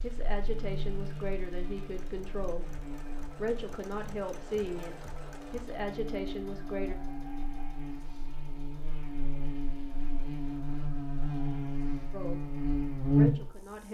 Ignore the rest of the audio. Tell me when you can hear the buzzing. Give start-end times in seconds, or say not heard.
0.0-13.8.